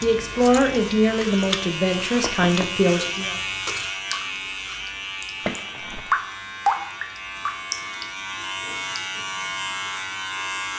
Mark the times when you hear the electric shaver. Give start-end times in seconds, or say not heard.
0.0-10.7.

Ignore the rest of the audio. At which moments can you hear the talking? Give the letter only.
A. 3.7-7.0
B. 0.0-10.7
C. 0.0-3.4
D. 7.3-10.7
C.